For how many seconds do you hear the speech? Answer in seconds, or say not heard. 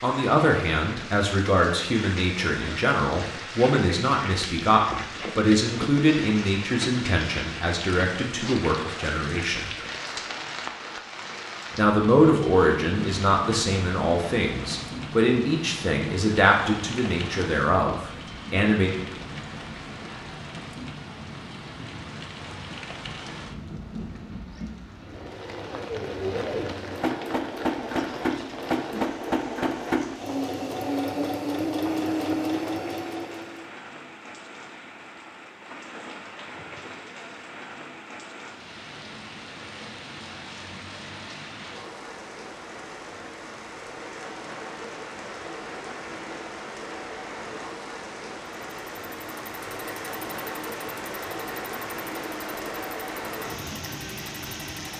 17 s.